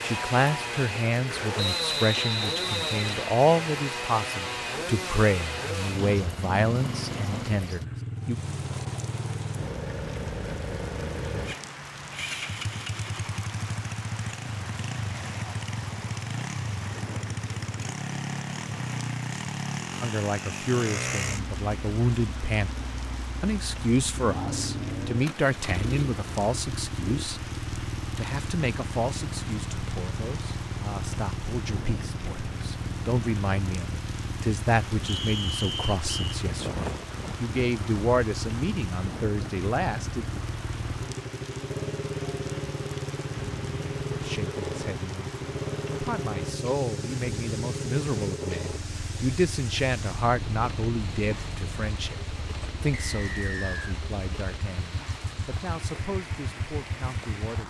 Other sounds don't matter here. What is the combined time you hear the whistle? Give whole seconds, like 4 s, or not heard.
4 s.